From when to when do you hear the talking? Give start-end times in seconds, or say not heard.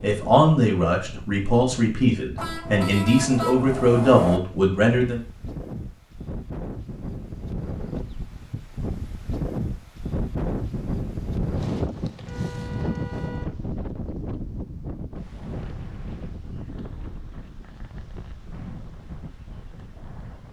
0.0-5.2.